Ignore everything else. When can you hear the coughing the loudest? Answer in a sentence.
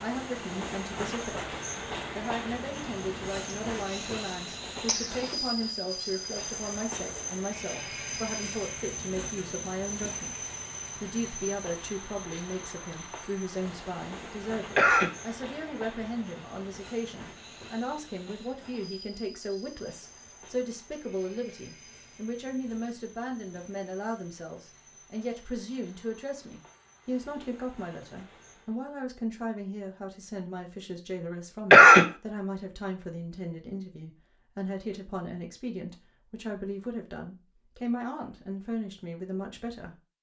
The loudest moment of the coughing is at 32 seconds.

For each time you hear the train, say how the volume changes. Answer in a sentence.
You can hear the train from 0.0 to 28.8 s, getting quieter.